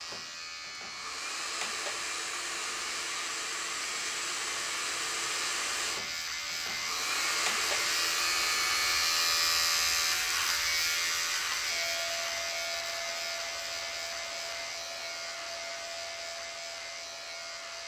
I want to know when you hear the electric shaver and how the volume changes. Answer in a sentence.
The electric shaver can be heard from 0.0 to 17.8 s, getting louder then quieter.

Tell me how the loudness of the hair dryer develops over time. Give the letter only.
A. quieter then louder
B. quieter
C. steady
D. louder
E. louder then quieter
B.